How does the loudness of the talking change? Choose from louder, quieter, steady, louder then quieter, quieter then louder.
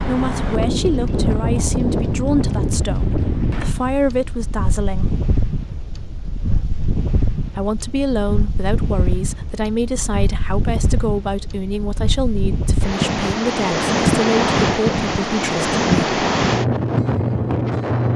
steady.